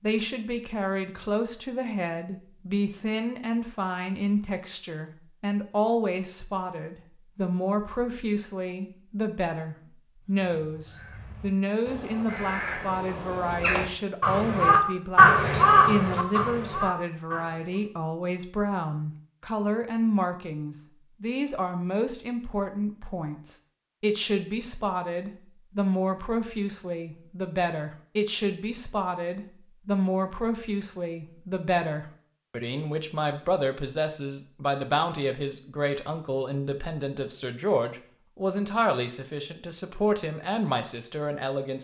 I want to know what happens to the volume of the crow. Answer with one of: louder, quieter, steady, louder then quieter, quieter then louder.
louder then quieter.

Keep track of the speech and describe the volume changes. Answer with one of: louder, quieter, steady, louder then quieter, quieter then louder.
steady.